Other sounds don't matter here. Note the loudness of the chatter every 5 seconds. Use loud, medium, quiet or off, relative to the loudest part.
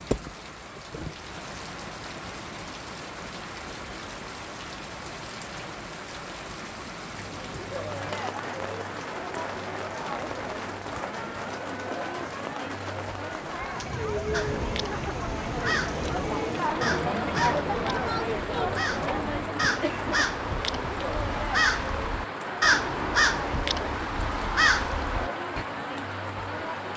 off, medium, medium, loud, medium, medium.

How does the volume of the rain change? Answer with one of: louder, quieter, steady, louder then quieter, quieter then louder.
steady.